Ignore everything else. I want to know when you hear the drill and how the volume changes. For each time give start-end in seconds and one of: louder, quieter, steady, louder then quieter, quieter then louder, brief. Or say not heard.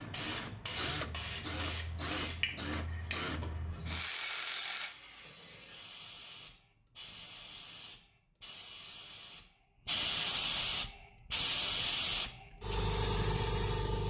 0.0-5.0 steady.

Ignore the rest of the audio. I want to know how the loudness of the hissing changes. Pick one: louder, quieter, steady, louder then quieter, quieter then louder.
quieter then louder.